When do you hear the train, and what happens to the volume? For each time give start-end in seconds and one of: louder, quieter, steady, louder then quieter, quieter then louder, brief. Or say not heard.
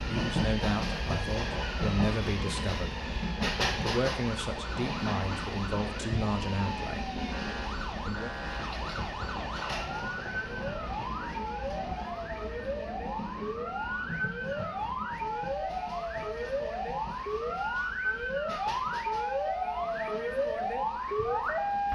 0.0-21.9 quieter.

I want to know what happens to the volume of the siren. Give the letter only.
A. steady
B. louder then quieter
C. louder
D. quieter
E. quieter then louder
C.